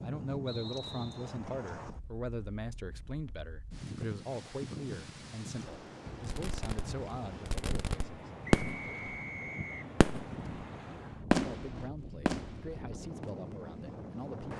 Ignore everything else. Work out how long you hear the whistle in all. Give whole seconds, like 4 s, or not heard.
2 s.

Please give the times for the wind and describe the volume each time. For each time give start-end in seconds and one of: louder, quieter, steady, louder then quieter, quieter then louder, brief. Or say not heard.
0.0-14.5 steady.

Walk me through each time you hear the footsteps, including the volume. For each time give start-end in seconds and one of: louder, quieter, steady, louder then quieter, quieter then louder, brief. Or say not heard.
not heard.